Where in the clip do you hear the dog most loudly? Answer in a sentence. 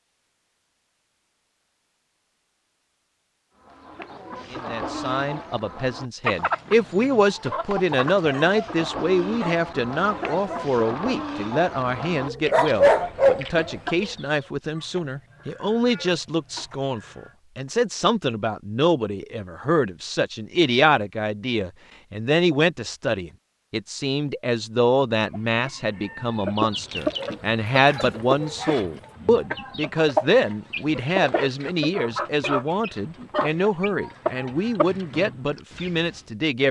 The volume of the dog peaks at 13 seconds.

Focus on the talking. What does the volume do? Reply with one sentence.
The volume of the talking stays about the same.